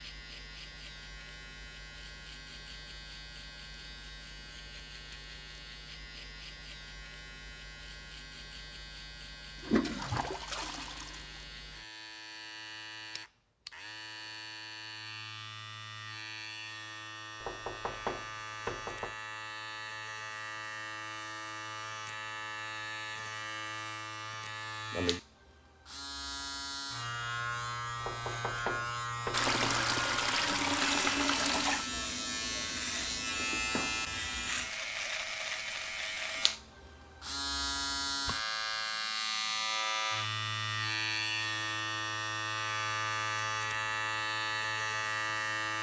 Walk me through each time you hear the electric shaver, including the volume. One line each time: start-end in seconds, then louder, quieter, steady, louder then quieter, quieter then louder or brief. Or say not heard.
0.0-45.7 louder.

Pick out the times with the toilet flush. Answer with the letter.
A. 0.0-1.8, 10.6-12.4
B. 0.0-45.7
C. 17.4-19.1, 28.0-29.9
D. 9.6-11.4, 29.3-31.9
D.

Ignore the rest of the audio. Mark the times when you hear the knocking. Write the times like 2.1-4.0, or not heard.
17.4-19.1, 28.0-29.9.